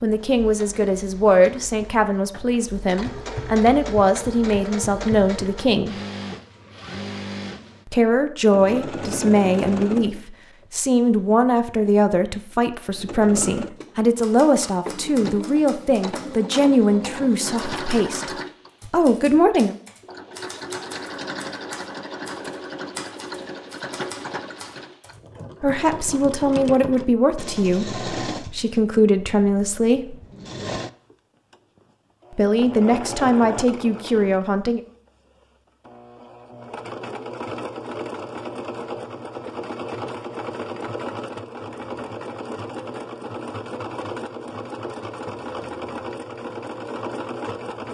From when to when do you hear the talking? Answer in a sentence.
You can hear the talking from 0.0 to 6.0 s, from 7.8 to 19.8 s, from 25.6 to 30.1 s and from 32.3 to 34.8 s.